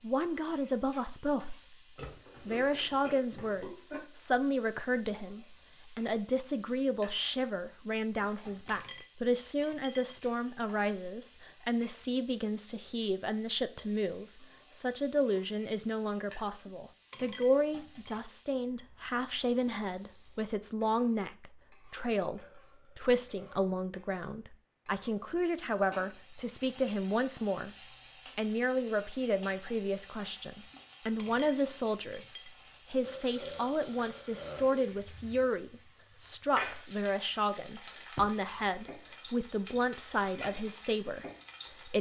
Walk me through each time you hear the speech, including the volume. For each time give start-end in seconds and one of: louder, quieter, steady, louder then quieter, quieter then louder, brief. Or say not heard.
0.0-27.8 steady
28.4-41.9 steady.